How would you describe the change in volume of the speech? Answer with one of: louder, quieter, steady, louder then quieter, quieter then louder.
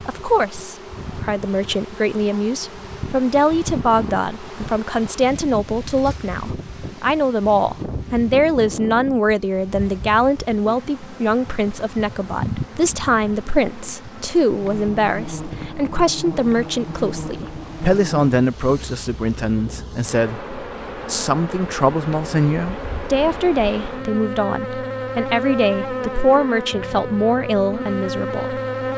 steady.